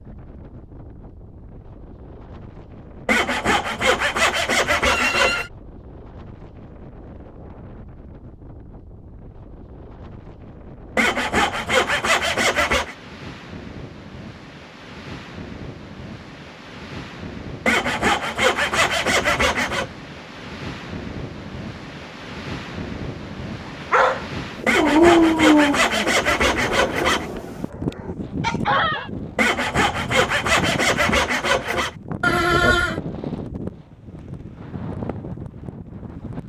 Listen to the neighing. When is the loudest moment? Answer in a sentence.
The volume of the neighing peaks at 33 seconds.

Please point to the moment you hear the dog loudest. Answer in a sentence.
The volume of the dog peaks at 25 seconds.